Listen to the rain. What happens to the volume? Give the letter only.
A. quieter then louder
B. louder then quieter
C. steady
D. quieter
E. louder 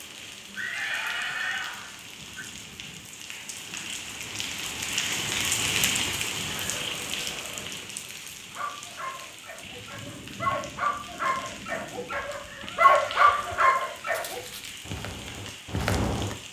B.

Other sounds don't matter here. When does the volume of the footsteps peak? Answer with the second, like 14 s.
16 s.